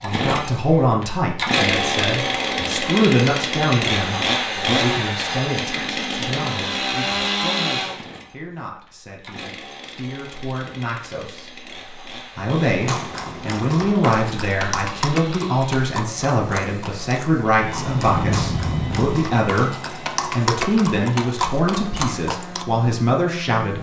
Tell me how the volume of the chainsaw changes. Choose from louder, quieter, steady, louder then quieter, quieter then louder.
quieter.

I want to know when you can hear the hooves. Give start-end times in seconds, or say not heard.
12.8-22.6.